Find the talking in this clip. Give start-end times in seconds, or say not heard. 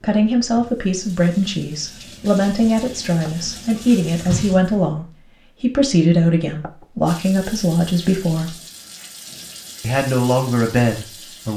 0.0-8.6, 9.8-11.5.